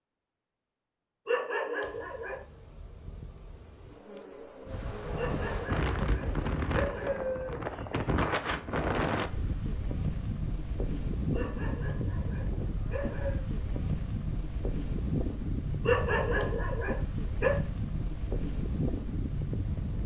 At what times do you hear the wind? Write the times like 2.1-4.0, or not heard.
4.7-20.0.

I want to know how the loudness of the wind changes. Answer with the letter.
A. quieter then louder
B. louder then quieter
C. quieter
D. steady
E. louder
D.